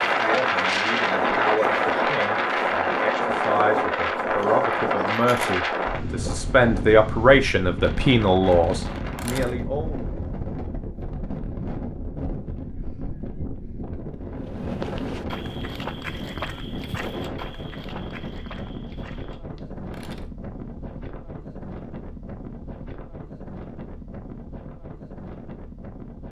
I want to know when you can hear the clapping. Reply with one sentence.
You can't hear the clapping here.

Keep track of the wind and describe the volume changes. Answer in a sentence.
The loudness of the wind goes down.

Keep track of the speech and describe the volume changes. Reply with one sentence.
The volume of the speech goes up.